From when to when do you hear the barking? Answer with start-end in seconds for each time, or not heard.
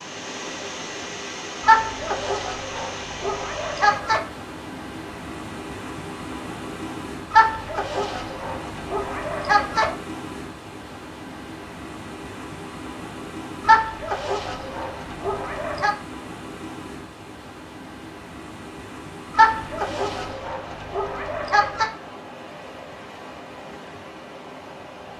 1.6-4.2, 7.3-9.9, 13.6-15.9, 19.3-21.9.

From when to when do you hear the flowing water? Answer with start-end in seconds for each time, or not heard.
0.0-25.1.